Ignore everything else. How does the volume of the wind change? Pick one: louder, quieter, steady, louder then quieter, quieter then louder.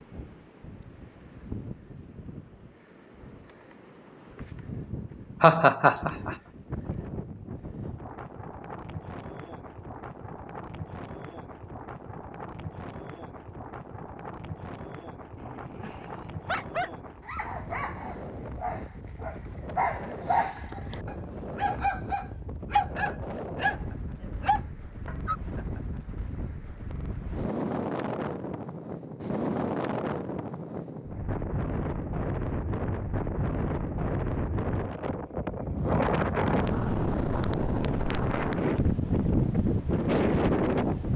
louder.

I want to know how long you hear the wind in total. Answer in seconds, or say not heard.
41 s.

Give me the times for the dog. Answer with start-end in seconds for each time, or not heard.
15.3-25.4.